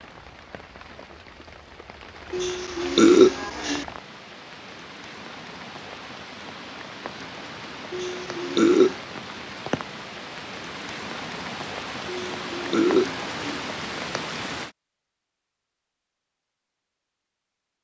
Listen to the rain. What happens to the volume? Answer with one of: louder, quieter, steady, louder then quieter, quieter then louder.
louder.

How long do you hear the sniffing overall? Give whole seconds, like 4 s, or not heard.
4 s.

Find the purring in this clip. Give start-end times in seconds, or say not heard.
not heard.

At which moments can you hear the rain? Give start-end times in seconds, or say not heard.
0.0-14.8.